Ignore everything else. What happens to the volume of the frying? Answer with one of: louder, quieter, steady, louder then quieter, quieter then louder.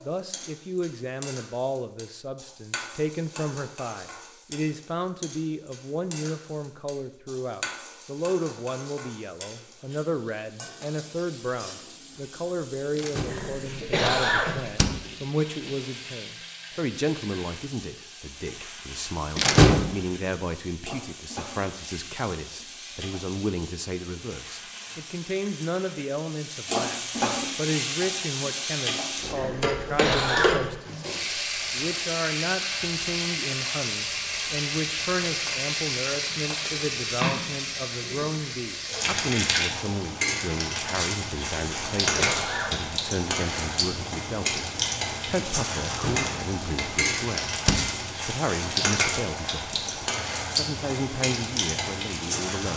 louder.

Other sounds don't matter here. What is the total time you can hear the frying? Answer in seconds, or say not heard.
53 s.